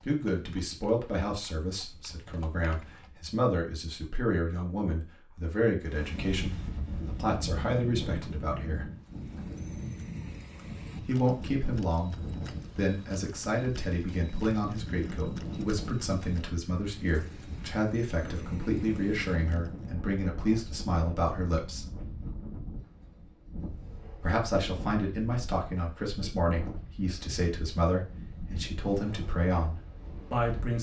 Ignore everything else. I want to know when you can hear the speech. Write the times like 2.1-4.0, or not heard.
0.1-8.9, 11.0-12.2, 12.8-21.9, 24.2-30.7.